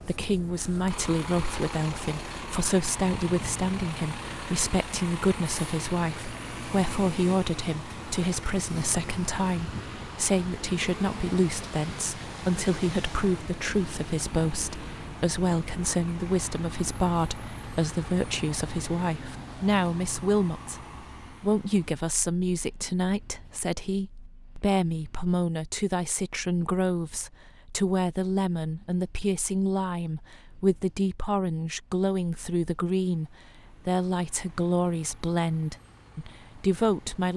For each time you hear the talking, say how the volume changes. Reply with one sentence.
You can hear the talking from 0.0 to 37.3 s, at a steady volume.